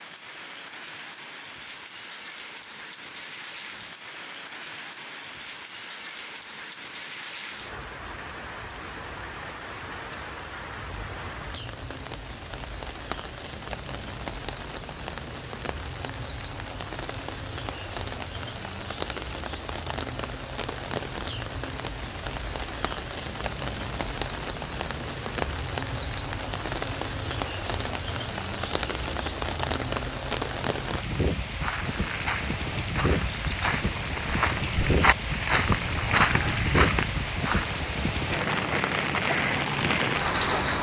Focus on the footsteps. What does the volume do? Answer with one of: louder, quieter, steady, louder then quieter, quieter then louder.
louder.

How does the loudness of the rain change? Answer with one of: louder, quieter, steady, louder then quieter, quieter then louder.
louder.